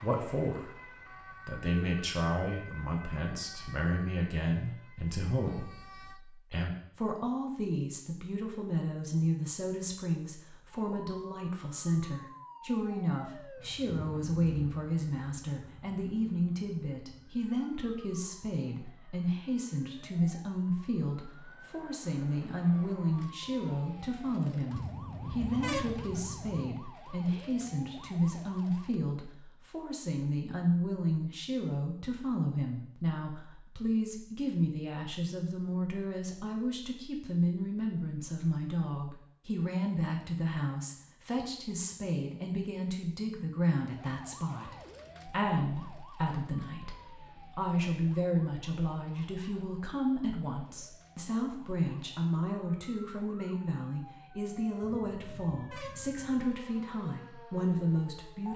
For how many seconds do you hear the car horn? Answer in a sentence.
You can hear the car horn for 4 seconds altogether.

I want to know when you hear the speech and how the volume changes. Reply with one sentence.
The speech can be heard briefly from 0.0 to 0.8 s; and from 1.4 to 58.5 s, at a steady volume.